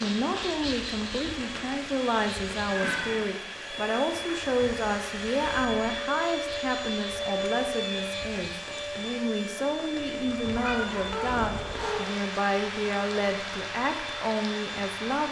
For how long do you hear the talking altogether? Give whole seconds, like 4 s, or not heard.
15 s.